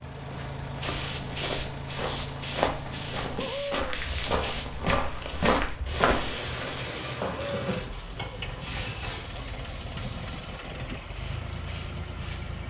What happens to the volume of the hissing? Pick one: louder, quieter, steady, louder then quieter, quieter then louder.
quieter.